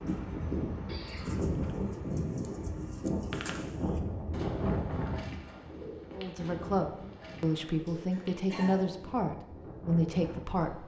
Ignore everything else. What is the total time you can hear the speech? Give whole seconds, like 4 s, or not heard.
5 s.